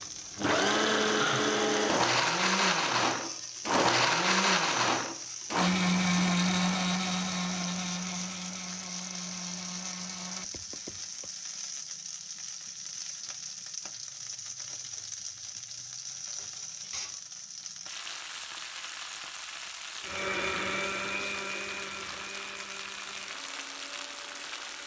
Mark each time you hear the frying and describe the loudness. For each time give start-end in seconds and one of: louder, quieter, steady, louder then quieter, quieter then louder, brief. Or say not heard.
0.0-24.8 steady.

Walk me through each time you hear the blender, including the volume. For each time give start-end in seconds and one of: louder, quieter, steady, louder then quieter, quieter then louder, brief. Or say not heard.
0.0-11.3 quieter
20.0-24.8 quieter.